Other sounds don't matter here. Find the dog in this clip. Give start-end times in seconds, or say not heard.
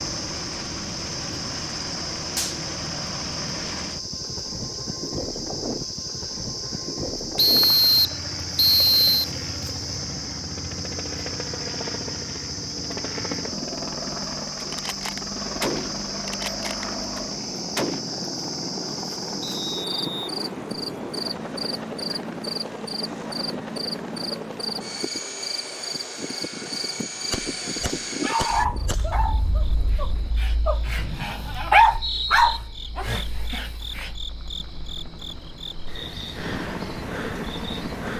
28.2-34.1.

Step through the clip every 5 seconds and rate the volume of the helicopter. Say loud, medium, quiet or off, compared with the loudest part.
loud, loud, loud, loud, loud, loud, quiet, loud.